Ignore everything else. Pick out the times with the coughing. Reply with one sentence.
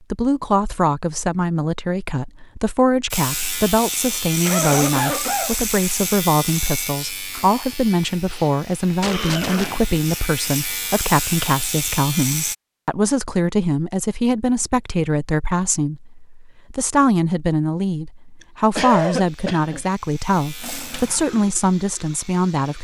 The coughing can be heard from 4.5 to 5.5 s, from 8.3 to 10.0 s and from 18.4 to 19.9 s.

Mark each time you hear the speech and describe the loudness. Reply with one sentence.
You can hear the speech from 0.1 to 22.8 s, at a steady volume.